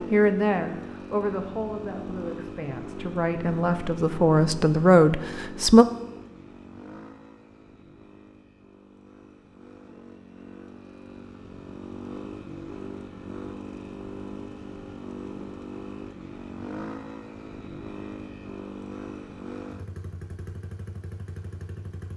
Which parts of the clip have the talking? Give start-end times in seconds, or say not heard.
0.1-5.8.